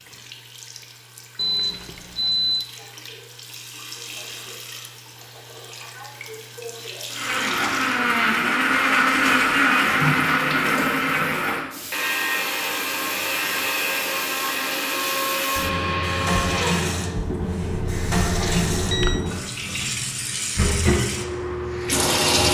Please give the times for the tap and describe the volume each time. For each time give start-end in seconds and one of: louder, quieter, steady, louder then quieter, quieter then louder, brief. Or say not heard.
0.0-22.4 louder.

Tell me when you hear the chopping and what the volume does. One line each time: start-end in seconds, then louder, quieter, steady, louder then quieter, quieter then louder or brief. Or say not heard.
not heard.